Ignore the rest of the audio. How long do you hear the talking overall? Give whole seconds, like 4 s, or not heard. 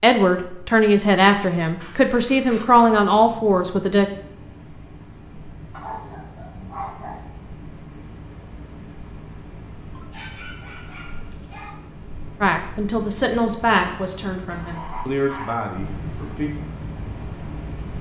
8 s.